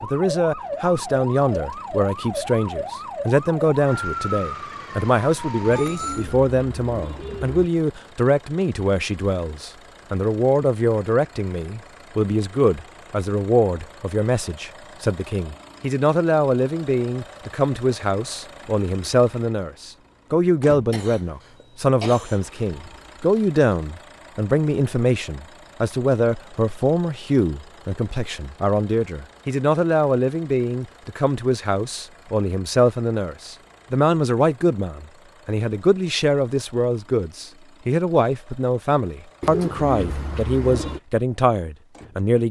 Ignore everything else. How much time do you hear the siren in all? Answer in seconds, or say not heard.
6 s.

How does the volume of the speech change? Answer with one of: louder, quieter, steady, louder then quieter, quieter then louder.
steady.